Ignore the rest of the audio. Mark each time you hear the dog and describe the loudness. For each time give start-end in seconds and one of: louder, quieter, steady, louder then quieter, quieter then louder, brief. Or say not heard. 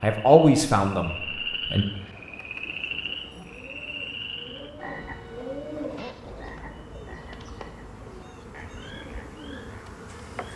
not heard.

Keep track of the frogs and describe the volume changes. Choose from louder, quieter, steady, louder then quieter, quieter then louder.
quieter.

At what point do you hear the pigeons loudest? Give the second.
6 s.